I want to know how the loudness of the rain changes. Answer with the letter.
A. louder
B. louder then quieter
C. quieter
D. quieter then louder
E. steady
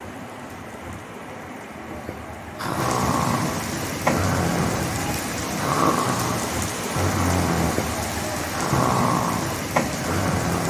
A.